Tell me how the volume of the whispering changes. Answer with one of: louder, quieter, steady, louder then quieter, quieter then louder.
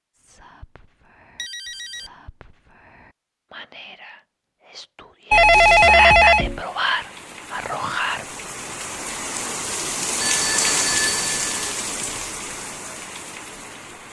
louder.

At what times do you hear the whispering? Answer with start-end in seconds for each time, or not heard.
0.1-8.2.